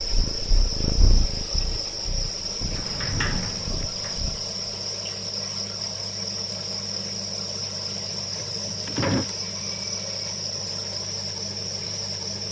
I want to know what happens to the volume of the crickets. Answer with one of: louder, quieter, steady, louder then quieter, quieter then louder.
steady.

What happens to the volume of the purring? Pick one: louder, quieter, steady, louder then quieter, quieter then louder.
quieter then louder.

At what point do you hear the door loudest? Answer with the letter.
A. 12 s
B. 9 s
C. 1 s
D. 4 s
B.